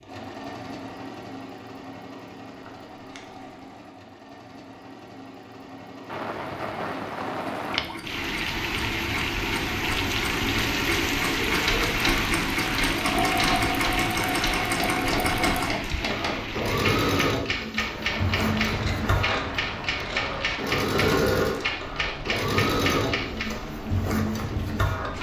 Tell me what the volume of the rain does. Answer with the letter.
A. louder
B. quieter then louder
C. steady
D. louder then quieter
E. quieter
E.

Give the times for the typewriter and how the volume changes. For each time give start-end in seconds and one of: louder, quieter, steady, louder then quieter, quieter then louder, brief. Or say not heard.
11.6-23.5 steady.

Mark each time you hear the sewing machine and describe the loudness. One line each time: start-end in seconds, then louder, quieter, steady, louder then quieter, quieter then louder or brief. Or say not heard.
0.0-25.1 louder.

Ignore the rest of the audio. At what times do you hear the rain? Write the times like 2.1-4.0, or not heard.
6.0-25.1.